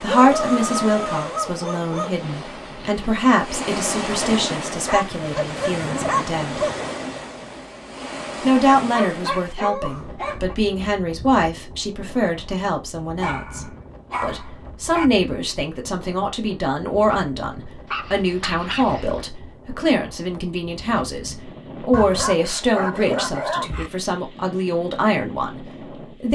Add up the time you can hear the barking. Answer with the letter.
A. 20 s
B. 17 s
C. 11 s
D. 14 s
C.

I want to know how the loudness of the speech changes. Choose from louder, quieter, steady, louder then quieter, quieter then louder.
steady.